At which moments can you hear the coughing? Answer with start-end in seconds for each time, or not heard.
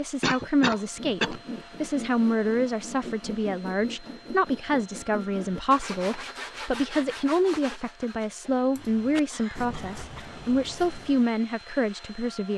0.2-1.4, 9.3-10.4.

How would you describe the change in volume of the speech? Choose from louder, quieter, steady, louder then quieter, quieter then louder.
steady.